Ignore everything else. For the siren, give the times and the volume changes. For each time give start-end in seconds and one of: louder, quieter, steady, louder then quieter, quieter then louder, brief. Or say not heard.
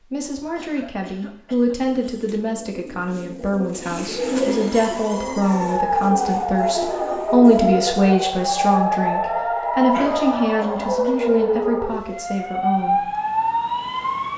4.4-14.3 steady.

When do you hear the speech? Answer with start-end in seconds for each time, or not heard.
0.0-13.1.